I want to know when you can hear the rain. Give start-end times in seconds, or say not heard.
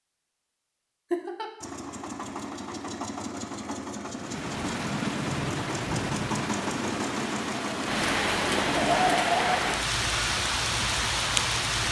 4.1-11.8.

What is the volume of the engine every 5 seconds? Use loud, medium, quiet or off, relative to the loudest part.
loud, loud, off.